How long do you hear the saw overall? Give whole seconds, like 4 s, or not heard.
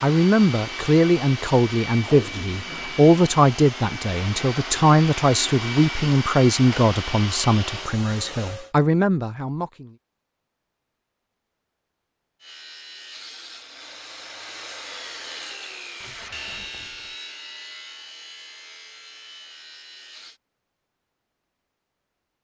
8 s.